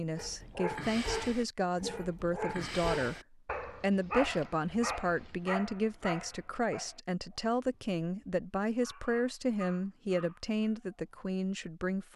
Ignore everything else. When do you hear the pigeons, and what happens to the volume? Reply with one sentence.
The pigeons can't be heard in this clip.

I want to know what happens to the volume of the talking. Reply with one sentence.
The volume of the talking stays about the same.